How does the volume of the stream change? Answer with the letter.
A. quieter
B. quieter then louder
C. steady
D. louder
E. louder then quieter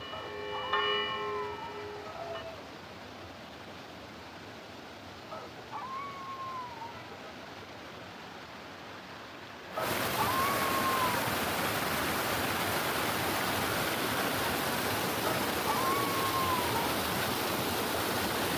D.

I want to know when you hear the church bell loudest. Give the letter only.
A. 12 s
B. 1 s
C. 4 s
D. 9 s
B.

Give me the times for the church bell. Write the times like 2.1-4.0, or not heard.
0.0-2.5.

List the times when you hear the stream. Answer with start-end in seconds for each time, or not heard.
0.0-18.5.